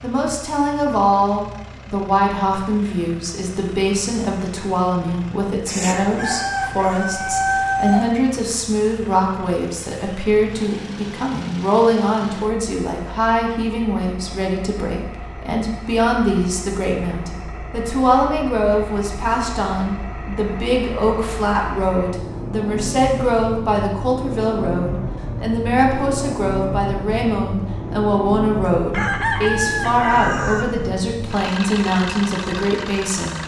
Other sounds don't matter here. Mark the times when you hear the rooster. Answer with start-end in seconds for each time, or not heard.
5.7-8.2, 28.9-30.9.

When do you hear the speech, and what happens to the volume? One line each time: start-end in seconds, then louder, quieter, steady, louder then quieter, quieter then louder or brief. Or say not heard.
0.0-33.4 steady.